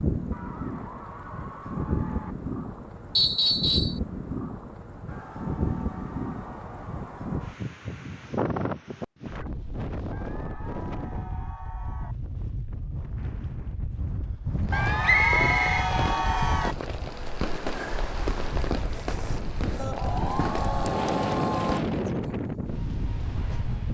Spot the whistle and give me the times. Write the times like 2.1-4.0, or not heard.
3.1-4.0, 15.0-16.6.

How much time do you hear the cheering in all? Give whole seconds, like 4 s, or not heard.
11 s.